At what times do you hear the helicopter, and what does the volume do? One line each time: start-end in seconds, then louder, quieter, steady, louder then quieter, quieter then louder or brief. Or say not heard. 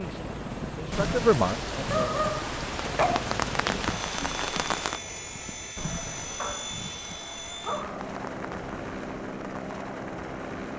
0.0-10.7 steady.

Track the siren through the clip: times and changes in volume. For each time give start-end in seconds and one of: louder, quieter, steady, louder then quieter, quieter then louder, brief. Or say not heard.
not heard.